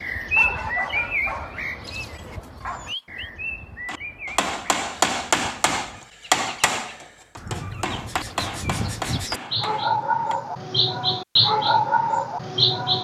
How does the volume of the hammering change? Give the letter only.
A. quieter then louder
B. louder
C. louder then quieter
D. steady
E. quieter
E.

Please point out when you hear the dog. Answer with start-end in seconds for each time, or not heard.
0.3-3.3.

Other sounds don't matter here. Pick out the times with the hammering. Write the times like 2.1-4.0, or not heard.
3.9-10.3.